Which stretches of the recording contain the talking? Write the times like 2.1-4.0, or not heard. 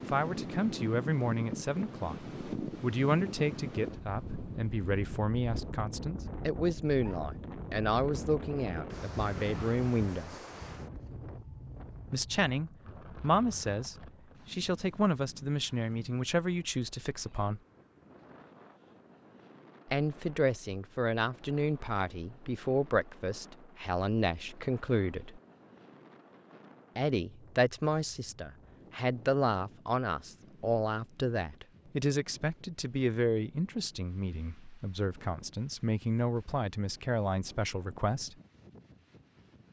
0.0-10.4, 12.1-17.6, 19.9-25.4, 26.9-38.4.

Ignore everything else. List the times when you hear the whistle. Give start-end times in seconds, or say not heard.
not heard.